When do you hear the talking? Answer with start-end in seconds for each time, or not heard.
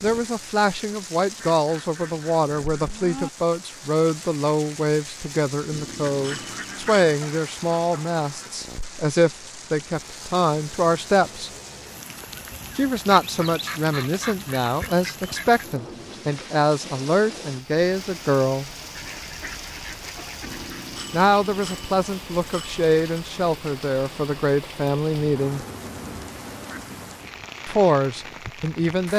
0.0-11.5, 12.8-18.7, 21.1-25.6, 27.6-29.1.